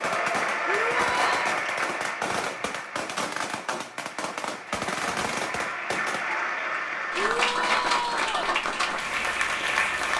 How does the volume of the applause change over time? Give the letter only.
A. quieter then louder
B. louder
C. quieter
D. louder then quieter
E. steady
A.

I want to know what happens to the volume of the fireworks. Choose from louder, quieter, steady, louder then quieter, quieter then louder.
steady.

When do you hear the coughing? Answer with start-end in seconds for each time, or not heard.
not heard.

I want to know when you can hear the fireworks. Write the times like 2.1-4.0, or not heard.
0.0-6.4.